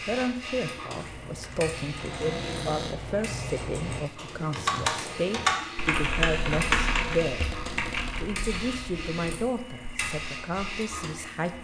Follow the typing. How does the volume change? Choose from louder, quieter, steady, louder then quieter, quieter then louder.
louder then quieter.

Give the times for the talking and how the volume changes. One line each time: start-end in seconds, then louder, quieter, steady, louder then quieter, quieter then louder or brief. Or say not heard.
0.0-11.5 steady.